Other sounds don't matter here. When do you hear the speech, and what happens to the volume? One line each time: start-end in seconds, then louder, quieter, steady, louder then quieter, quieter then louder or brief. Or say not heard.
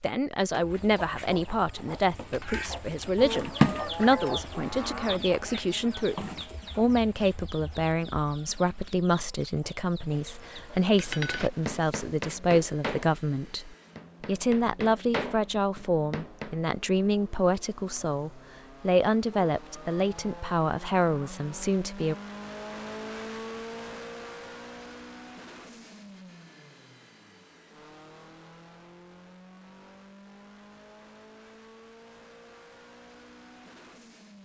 0.0-22.1 steady.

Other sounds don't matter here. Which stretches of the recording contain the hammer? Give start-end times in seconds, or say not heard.
10.9-16.6.